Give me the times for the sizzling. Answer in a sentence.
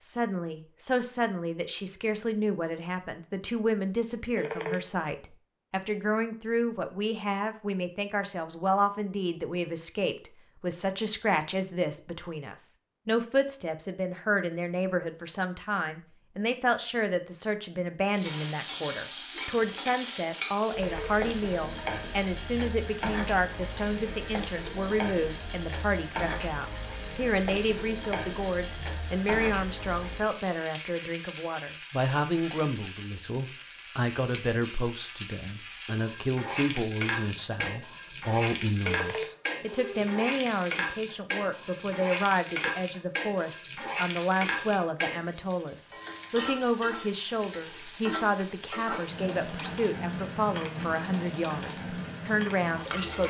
You can hear the sizzling from 18.1 to 53.2 s.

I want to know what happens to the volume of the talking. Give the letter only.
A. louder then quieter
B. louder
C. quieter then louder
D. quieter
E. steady
E.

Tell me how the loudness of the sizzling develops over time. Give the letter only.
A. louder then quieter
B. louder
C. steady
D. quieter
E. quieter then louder
C.